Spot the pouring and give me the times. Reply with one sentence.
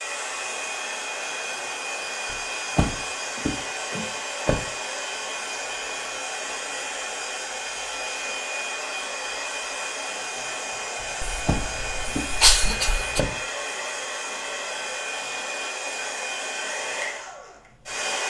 The pouring can't be heard in this clip.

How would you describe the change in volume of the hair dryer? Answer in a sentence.
The volume of the hair dryer stays about the same.